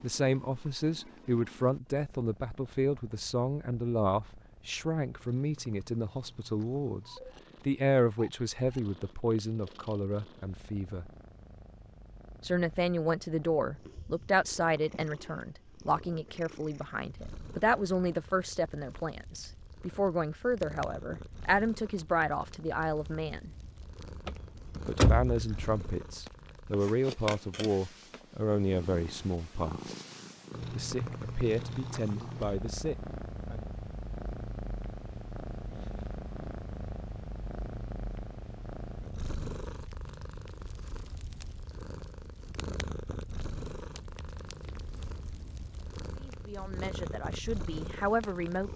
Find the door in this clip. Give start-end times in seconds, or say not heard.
24.2-25.6.